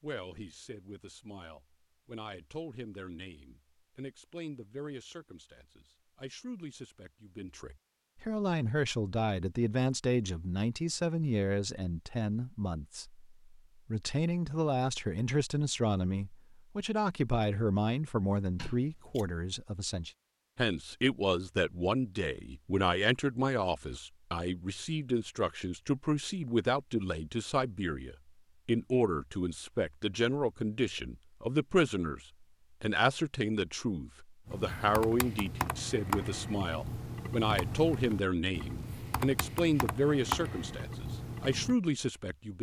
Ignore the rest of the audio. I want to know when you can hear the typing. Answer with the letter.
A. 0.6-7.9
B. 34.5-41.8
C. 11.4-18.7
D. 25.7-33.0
B.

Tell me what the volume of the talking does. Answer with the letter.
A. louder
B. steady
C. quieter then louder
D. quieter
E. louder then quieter
A.